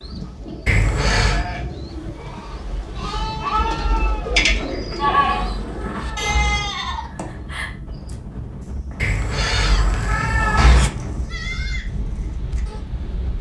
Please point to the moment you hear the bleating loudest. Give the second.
5 s.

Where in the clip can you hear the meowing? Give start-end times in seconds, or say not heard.
0.7-1.4, 4.7-6.7, 9.0-10.9.